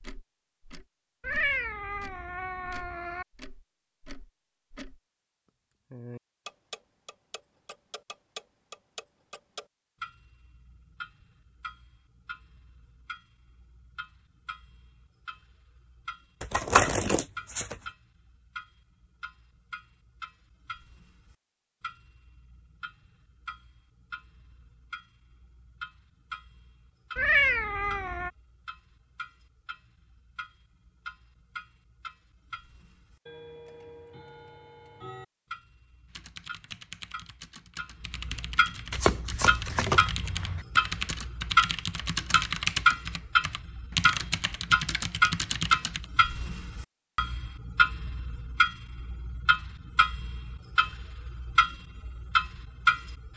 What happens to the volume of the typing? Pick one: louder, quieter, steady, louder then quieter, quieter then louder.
louder.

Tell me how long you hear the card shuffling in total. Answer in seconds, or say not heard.
3 s.